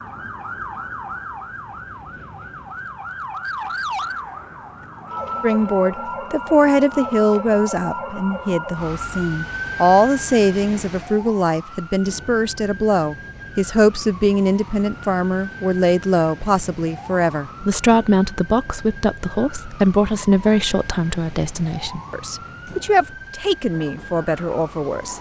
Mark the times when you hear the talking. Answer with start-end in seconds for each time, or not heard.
5.4-25.1.